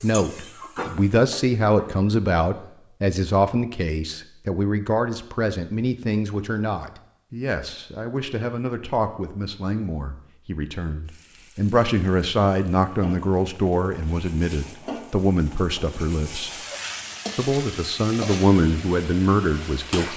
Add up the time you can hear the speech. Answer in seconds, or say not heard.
19 s.